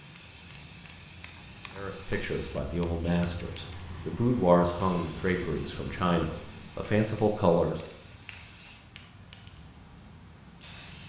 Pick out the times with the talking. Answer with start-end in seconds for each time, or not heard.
1.8-7.8.